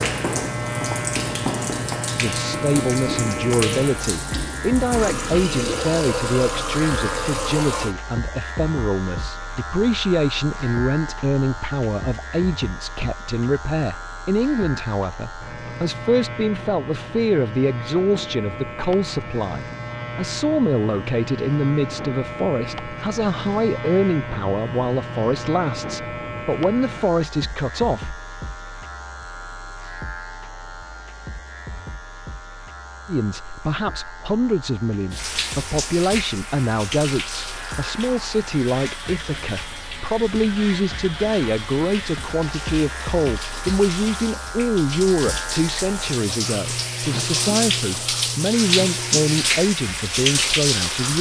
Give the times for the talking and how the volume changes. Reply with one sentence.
The talking can be heard from 2.1 to 28.2 s, at a steady volume; and from 33.0 to 51.1 s, at a steady volume.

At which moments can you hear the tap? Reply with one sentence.
You can hear the tap from 0.0 to 8.0 s and from 35.1 to 51.1 s.